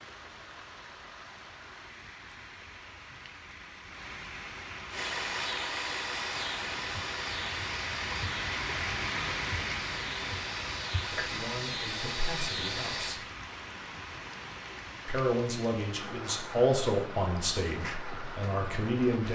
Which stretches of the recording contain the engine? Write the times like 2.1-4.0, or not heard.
4.9-13.2.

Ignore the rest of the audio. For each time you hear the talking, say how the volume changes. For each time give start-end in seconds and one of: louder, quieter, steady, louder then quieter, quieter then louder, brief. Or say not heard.
11.2-13.2 brief
15.1-19.3 louder then quieter.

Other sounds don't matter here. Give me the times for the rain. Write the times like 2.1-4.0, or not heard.
0.0-19.3.